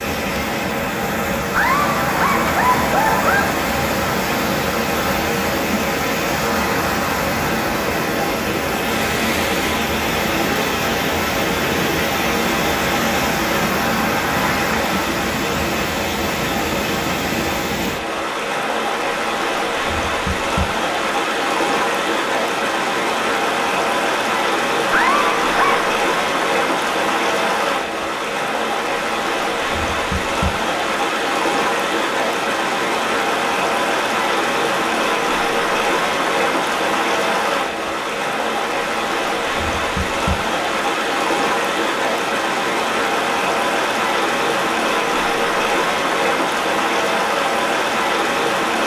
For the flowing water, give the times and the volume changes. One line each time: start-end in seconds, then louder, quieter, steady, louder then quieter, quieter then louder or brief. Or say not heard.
0.0-48.8 steady.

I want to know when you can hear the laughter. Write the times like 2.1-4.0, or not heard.
1.5-3.5, 24.9-25.9.